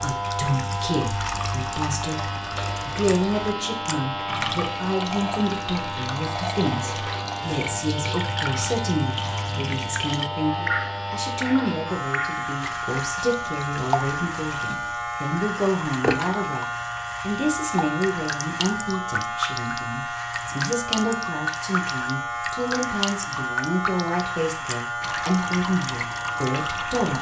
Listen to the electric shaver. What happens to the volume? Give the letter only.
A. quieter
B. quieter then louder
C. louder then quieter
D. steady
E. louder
D.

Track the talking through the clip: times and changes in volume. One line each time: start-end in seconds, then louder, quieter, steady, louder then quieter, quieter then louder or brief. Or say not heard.
0.0-27.1 steady.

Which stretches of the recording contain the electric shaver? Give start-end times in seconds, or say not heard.
0.0-27.1.